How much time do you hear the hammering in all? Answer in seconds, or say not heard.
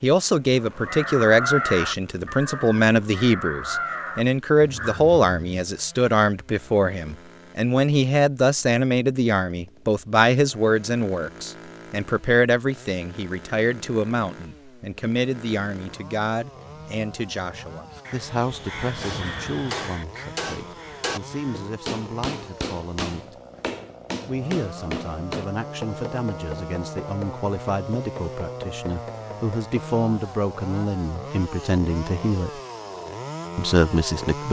11 s.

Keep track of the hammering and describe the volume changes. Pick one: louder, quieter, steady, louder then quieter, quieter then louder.
quieter.